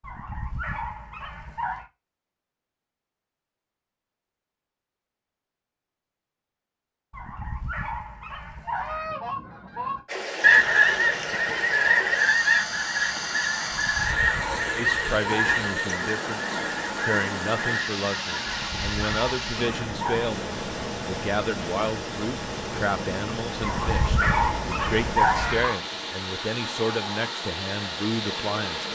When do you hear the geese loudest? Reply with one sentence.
The loudest moment of the geese is at 11 seconds.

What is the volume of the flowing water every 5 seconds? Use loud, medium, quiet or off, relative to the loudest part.
off, off, loud, loud, loud, loud.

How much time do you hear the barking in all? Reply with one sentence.
You can hear the barking for 10 seconds altogether.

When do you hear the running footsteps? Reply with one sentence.
The running footsteps can't be heard in this clip.